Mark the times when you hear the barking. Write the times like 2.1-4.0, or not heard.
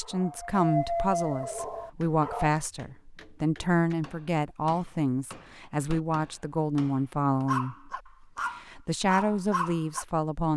0.0-2.5, 7.3-10.1.